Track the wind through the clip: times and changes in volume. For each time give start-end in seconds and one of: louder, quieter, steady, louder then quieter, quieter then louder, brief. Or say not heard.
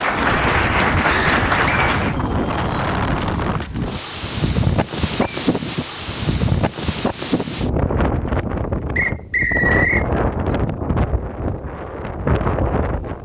0.0-13.1 steady.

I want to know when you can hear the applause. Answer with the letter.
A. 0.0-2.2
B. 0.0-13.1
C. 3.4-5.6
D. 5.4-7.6
A.